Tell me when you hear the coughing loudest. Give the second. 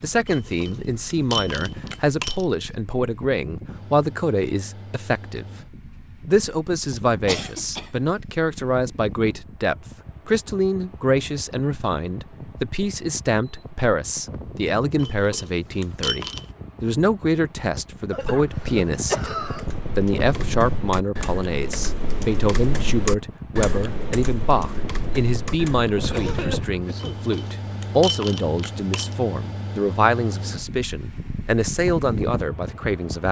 19 s.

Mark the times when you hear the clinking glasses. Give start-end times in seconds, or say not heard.
0.2-2.5, 14.9-16.5, 26.9-29.1.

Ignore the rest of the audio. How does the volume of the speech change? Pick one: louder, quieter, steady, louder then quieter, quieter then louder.
steady.